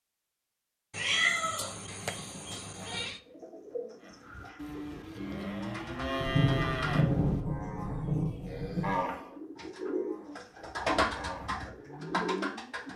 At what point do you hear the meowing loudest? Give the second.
1 s.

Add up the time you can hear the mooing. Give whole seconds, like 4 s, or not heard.
9 s.